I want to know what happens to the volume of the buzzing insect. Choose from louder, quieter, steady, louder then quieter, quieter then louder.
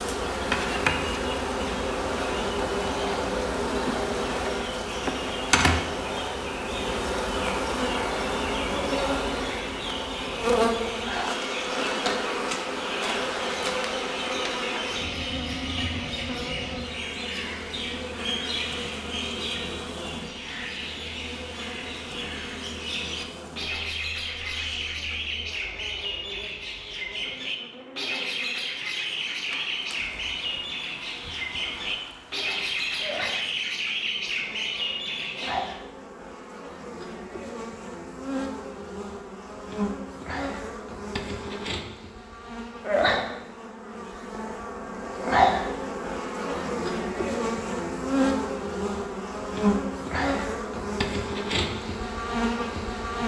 quieter then louder.